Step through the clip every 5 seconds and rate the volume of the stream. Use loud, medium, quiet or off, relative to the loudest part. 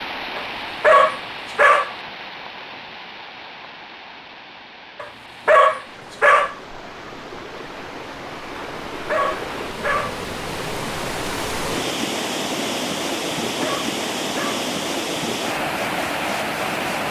medium, medium, loud, loud.